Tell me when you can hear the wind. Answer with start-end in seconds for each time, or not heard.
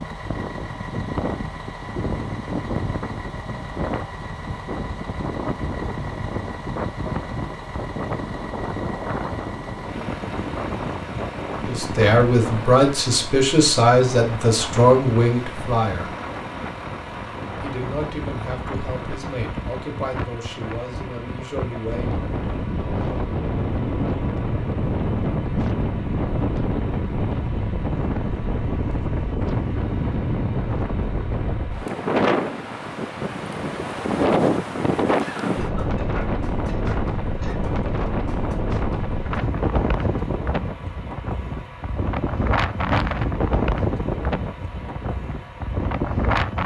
0.0-46.6.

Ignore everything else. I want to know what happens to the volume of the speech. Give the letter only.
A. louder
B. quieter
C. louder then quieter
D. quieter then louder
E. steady
B.